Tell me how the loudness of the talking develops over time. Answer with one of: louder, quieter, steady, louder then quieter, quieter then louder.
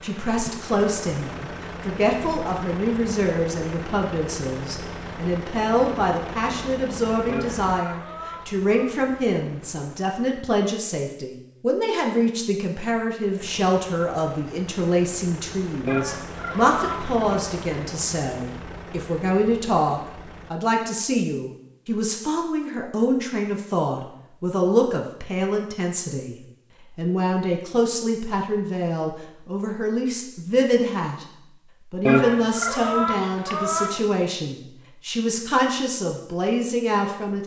steady.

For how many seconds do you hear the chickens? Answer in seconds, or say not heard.
5 s.